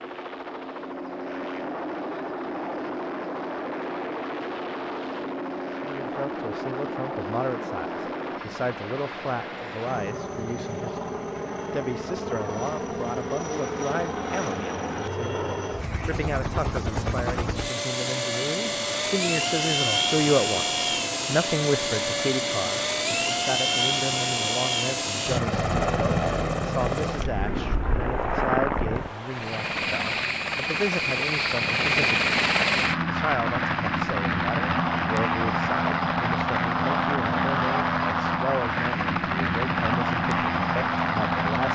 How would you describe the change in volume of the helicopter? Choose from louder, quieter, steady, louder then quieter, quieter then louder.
louder.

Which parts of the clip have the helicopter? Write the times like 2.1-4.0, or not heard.
0.0-41.7.